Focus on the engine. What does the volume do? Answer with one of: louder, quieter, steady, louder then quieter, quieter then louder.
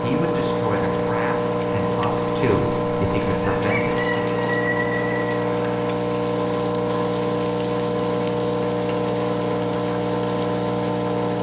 steady.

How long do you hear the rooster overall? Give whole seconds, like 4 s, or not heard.
2 s.